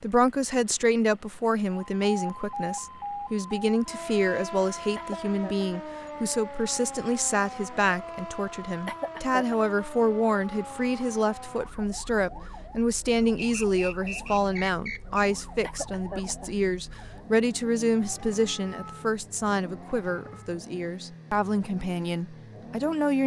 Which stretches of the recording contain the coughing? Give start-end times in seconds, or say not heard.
5.0-5.7, 8.8-9.6, 15.6-16.5.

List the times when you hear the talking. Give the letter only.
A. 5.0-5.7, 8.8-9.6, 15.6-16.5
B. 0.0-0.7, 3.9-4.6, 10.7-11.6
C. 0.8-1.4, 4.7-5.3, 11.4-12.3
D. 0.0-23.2
D.